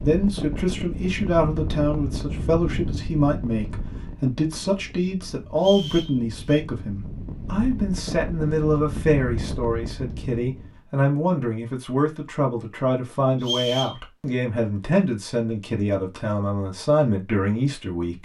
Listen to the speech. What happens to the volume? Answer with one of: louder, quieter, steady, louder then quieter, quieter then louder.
steady.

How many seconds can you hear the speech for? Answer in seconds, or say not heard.
18 s.